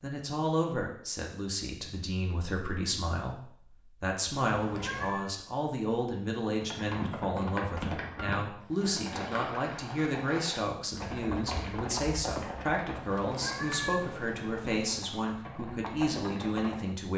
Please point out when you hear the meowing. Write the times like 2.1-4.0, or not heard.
4.5-5.3, 12.9-14.9.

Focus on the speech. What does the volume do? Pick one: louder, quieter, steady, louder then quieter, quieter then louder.
steady.